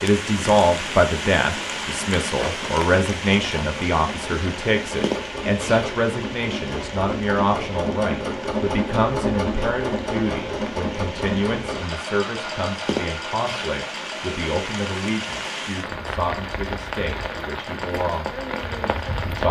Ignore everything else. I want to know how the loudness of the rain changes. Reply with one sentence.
The loudness of the rain goes down, then up.